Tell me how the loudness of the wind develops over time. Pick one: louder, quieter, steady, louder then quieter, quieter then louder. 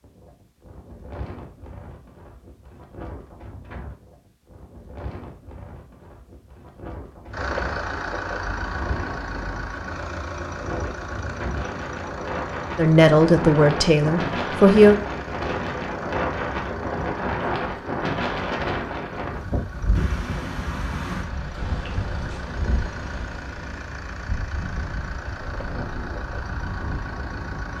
louder then quieter.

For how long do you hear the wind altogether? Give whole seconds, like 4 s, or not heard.
28 s.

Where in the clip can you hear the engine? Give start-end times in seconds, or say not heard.
7.3-27.7.